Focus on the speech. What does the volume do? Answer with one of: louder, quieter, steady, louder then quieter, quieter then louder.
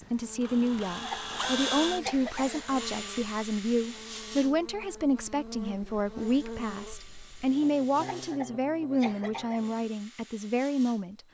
steady.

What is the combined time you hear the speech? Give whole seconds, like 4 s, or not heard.
11 s.